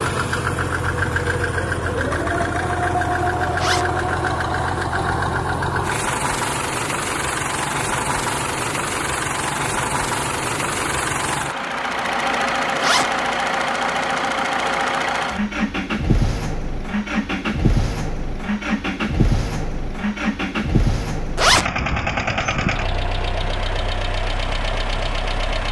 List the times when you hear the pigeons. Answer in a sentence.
You can't hear the pigeons here.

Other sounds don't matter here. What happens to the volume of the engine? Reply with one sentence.
The loudness of the engine stays about the same.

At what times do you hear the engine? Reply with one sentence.
You can hear the engine from 0.0 to 25.6 s.